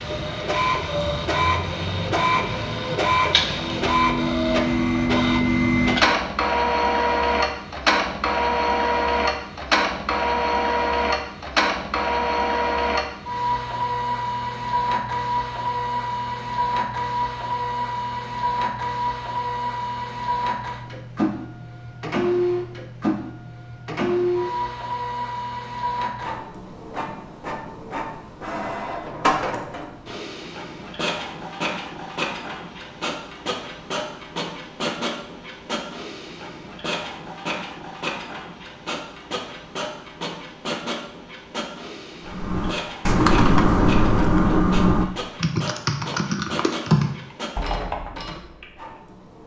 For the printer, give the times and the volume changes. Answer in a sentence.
The printer can be heard from 0.0 to 49.4 s, getting quieter.